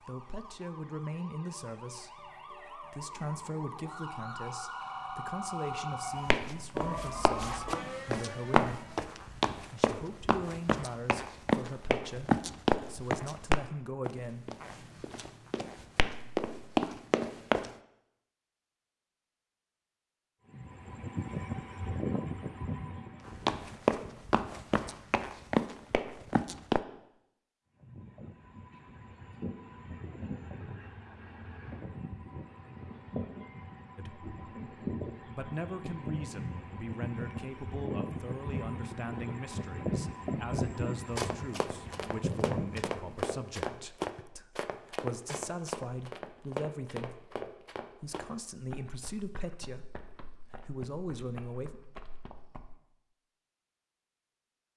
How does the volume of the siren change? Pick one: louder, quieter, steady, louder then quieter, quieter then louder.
louder.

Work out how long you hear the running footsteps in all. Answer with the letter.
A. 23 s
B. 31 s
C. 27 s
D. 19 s
C.